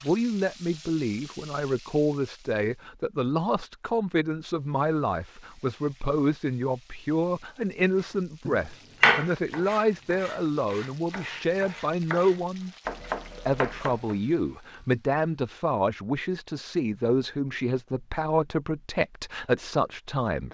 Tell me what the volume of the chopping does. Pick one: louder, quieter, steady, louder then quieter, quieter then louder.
quieter then louder.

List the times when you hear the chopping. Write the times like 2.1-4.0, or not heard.
8.4-14.2.